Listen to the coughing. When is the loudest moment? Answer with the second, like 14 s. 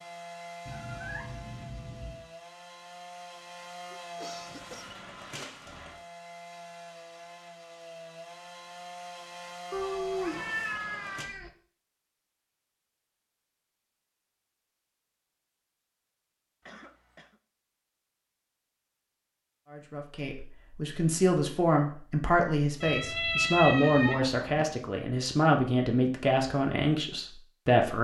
4 s.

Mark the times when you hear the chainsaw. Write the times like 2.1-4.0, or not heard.
0.0-11.2.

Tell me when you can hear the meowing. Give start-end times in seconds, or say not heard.
0.7-2.2, 9.7-11.5, 22.8-24.6.